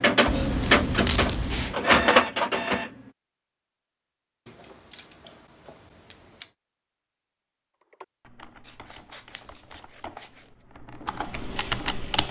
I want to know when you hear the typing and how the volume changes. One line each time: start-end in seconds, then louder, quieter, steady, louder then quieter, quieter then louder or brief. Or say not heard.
7.8-12.2 louder.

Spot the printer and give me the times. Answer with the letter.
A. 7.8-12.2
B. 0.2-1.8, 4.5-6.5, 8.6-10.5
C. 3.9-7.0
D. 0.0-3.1
D.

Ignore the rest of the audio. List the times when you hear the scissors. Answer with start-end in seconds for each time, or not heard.
0.2-1.8, 4.5-6.5, 8.6-10.5.